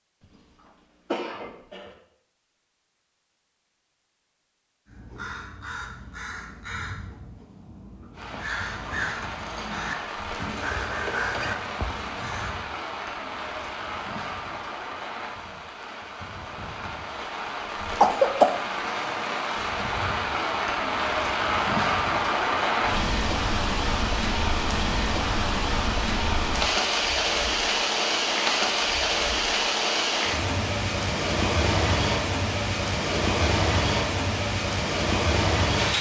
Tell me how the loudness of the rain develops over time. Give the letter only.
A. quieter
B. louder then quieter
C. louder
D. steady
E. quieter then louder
C.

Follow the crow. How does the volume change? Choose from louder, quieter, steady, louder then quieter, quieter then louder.
louder.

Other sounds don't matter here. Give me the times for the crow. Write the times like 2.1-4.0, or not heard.
4.8-12.7.